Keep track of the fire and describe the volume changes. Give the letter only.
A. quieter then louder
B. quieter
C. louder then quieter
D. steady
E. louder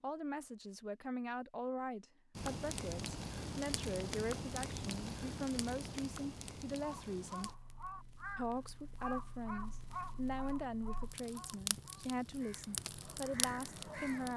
A.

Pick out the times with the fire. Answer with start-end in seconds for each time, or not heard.
2.4-14.3.